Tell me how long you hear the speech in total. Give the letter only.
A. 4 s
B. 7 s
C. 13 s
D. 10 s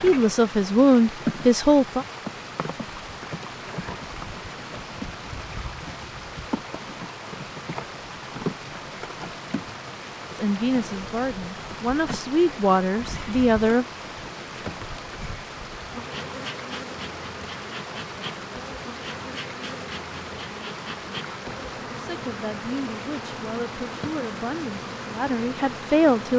D.